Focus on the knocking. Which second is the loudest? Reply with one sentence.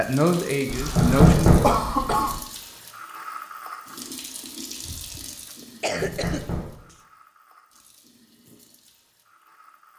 The loudest moment of the knocking is at 1 second.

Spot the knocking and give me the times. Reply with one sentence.
The knocking can be heard from 0.9 to 1.7 s and from 6.0 to 6.8 s.